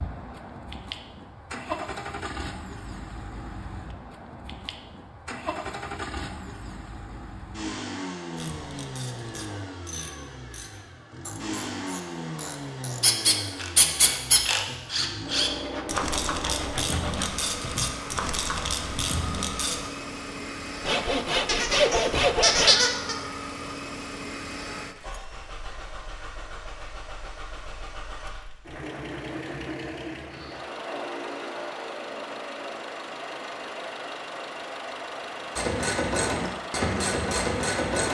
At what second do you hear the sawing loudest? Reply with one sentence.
The loudest moment of the sawing is at 22 seconds.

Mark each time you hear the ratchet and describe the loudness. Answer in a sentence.
The ratchet can be heard from 8.3 to 19.9 s, getting louder; and briefly from 35.5 to 38.0 s.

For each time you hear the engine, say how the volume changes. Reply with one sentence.
You can hear the engine from 0.0 to 38.0 s, at a steady volume.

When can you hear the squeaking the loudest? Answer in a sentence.
The volume of the squeaking peaks at 23 seconds.